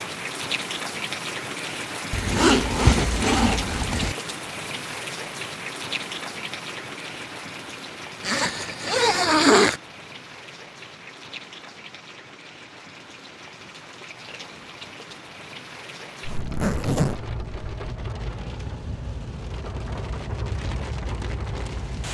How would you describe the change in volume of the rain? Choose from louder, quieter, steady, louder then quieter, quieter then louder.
quieter then louder.